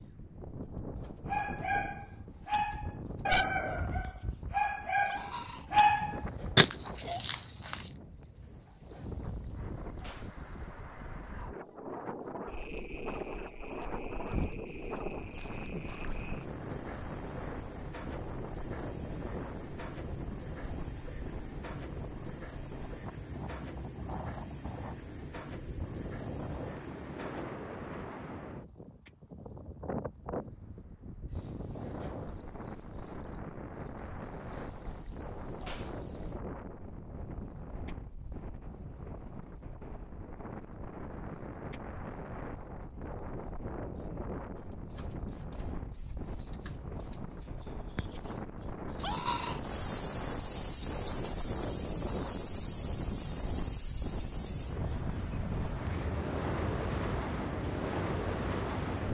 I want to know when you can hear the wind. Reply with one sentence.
You can hear the wind from 0.0 to 59.0 s.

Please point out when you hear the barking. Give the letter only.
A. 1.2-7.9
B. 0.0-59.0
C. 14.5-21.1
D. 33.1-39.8
A.